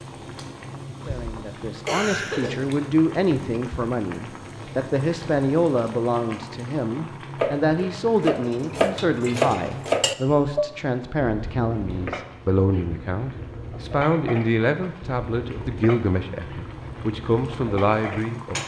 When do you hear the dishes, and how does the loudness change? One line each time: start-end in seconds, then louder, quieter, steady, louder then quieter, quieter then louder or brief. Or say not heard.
7.3-18.2 quieter.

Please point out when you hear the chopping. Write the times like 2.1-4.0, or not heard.
not heard.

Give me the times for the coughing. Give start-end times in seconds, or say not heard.
1.9-2.5.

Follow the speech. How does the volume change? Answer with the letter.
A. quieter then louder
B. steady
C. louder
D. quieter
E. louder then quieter
B.